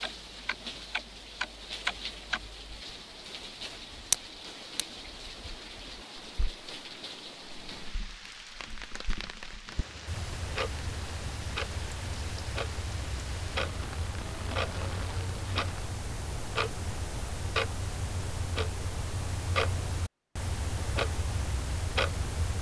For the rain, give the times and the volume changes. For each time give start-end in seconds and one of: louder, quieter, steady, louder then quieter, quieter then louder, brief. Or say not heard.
0.0-15.9 steady.